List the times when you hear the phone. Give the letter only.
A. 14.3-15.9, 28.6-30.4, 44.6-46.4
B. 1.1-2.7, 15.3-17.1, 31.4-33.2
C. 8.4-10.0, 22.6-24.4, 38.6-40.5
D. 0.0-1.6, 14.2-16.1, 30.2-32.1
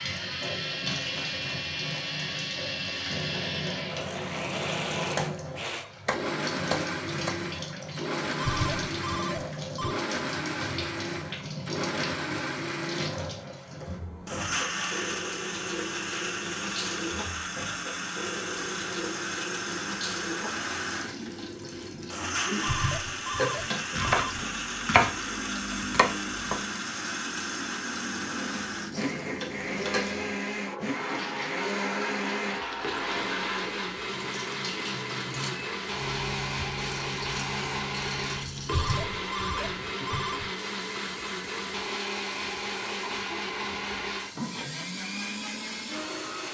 C.